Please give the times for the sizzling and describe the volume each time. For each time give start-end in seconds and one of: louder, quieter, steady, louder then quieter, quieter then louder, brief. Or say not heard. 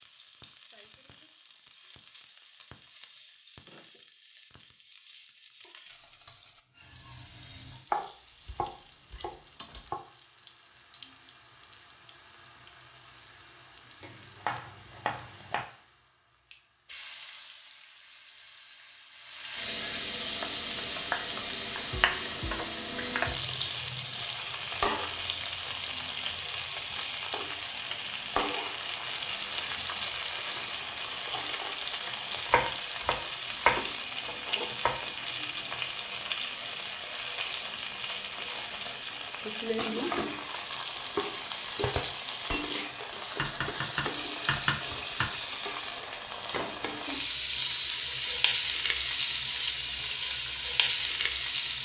0.0-51.8 louder.